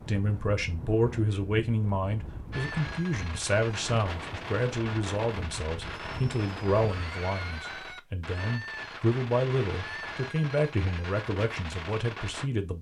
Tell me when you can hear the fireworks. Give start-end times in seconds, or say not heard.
2.5-12.5.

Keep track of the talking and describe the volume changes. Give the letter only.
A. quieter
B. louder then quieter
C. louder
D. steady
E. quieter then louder
D.